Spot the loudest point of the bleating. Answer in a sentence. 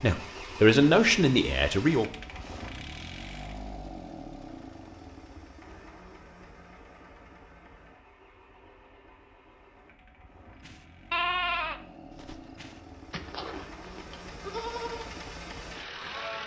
The volume of the bleating peaks at 11 seconds.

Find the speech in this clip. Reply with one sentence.
The speech can be heard from 0.0 to 2.0 s.